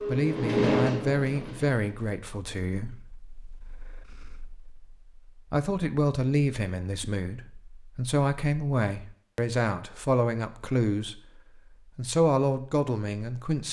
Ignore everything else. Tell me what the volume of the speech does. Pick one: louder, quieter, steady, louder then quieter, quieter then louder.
quieter then louder.